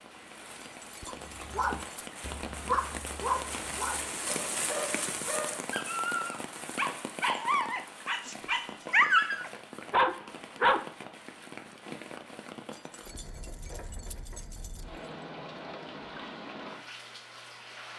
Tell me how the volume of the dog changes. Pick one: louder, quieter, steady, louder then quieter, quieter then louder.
louder.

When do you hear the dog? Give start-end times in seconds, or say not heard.
1.1-10.8.